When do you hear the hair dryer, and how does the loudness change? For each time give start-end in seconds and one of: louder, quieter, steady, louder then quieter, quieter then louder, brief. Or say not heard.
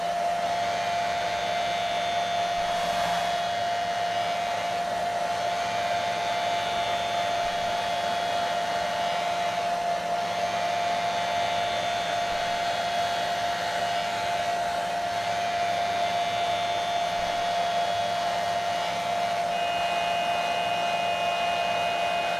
0.0-22.3 steady.